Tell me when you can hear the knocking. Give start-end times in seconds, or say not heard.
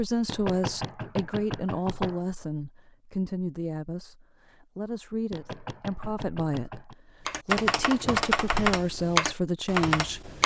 0.2-2.2, 5.3-7.0.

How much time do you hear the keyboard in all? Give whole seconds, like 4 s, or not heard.
3 s.